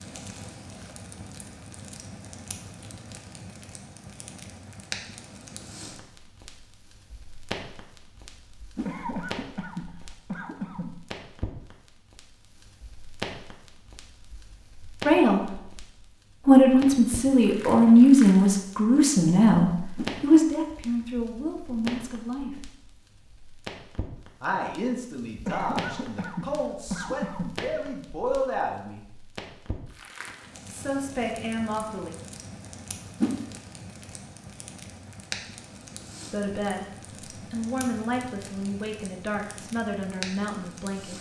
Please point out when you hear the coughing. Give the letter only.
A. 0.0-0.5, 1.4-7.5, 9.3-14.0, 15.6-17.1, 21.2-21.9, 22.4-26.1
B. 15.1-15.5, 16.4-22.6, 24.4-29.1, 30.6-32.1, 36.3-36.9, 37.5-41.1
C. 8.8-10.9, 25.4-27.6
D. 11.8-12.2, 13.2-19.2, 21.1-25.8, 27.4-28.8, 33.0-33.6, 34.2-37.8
C.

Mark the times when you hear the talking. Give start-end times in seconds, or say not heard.
15.1-15.5, 16.4-22.6, 24.4-29.1, 30.6-32.1, 36.3-36.9, 37.5-41.1.